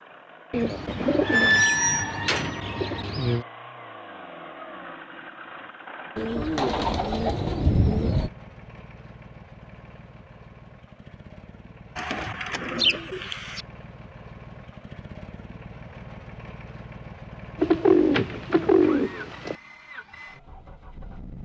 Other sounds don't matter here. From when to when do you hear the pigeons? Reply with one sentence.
The pigeons can be heard from 0.5 to 3.5 s, from 6.2 to 8.3 s, from 11.9 to 13.7 s and from 17.6 to 19.6 s.